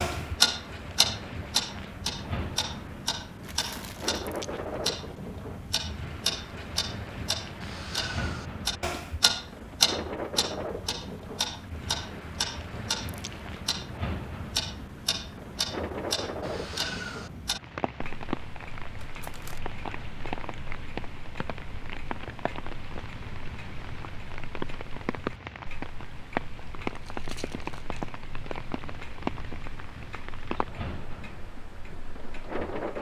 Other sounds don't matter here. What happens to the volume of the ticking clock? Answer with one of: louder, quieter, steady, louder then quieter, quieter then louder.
quieter.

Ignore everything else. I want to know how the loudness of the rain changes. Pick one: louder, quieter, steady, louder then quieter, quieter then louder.
steady.